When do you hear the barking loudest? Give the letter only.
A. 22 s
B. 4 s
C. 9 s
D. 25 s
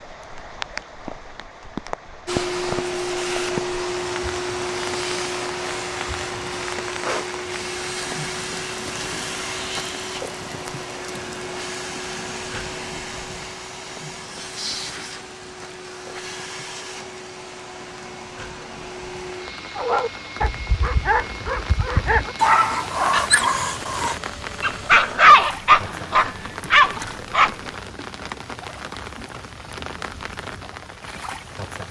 D.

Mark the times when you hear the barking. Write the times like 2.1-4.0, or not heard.
19.8-27.7.